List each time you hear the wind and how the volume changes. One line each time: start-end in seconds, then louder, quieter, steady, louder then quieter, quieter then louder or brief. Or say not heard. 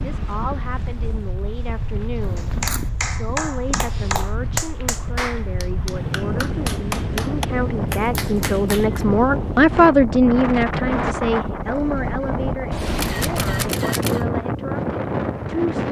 0.0-15.8 louder.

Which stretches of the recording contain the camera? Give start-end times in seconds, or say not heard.
2.2-2.9, 12.7-14.2.